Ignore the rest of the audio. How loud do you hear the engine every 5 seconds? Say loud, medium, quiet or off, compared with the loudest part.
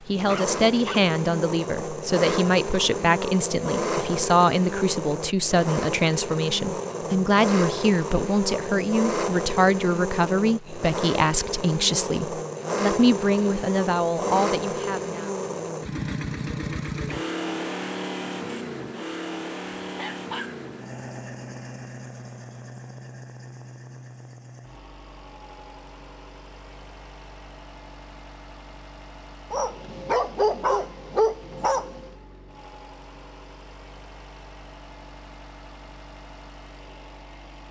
loud, loud, loud, loud, medium, quiet, quiet, quiet.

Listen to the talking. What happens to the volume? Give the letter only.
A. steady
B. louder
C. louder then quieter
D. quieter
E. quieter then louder
A.